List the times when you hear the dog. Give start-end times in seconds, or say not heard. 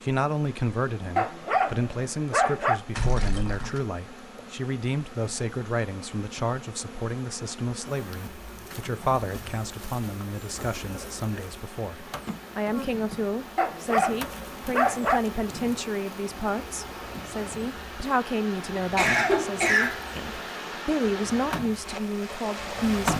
1.1-2.8, 13.6-15.2.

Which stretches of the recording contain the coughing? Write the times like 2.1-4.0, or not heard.
3.0-3.8, 10.6-11.4, 18.8-20.1.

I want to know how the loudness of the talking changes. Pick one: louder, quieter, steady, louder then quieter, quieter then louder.
steady.